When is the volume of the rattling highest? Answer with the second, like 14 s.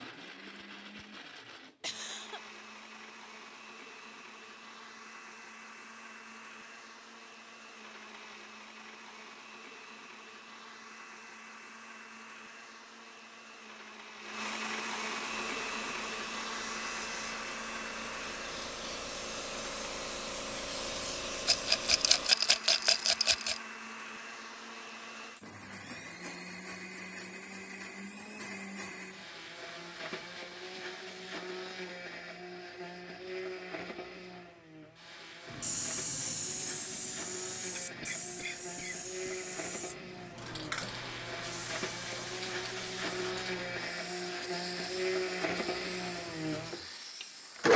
22 s.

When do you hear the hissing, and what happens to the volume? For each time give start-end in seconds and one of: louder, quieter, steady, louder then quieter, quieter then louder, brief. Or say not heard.
15.2-22.3 louder
35.5-47.7 quieter.